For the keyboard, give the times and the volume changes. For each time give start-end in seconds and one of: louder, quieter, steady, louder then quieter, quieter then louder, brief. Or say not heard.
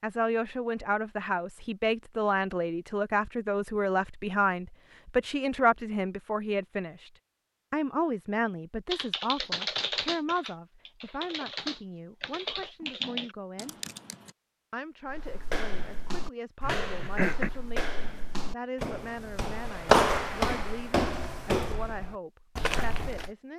8.9-14.3 quieter then louder.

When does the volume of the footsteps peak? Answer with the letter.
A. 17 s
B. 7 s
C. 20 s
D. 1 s
C.